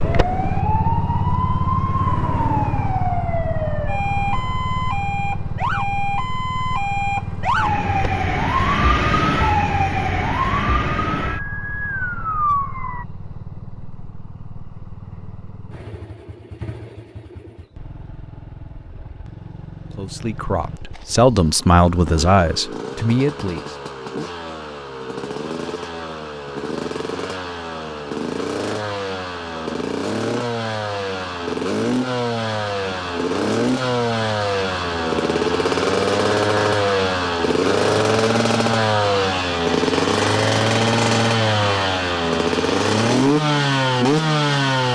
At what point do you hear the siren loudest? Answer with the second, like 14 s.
9 s.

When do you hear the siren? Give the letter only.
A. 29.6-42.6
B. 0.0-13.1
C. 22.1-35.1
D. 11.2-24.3
B.